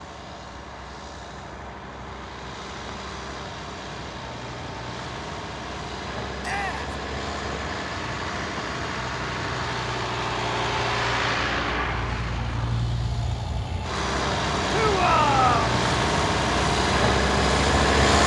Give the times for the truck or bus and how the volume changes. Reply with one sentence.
You can hear the truck or bus from 0.0 to 18.2 s, getting louder.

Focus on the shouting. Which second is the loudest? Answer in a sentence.
The volume of the shouting peaks at 15 seconds.